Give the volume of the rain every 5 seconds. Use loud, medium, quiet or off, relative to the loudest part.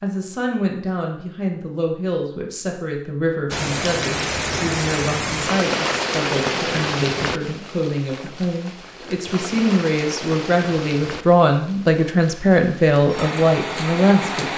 loud, loud, medium.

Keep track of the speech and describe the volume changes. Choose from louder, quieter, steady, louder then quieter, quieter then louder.
louder.